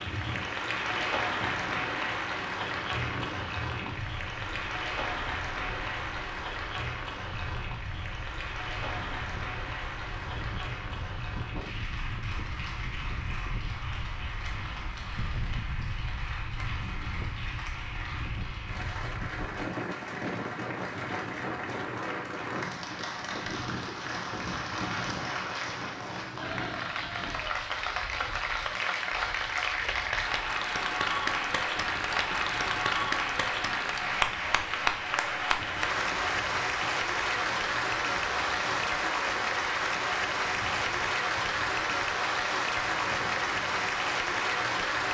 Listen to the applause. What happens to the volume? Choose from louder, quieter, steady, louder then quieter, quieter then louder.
quieter then louder.